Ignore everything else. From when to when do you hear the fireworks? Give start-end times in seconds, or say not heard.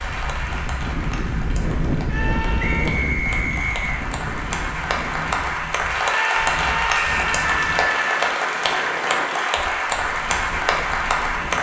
not heard.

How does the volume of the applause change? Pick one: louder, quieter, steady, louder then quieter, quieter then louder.
louder.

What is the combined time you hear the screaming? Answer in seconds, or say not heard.
3 s.